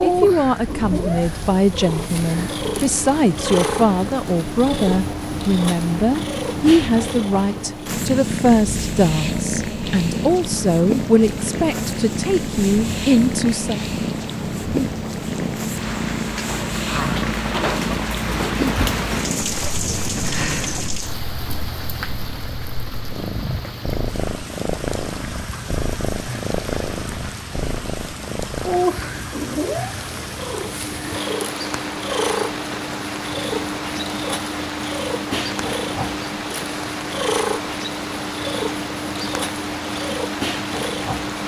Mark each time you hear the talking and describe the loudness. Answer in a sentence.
The talking can be heard from 0.0 to 13.8 s, at a steady volume.